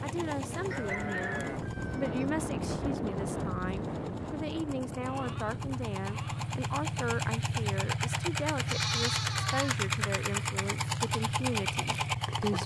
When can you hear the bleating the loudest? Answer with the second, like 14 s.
9 s.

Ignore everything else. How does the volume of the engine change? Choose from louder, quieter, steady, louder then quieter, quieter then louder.
louder.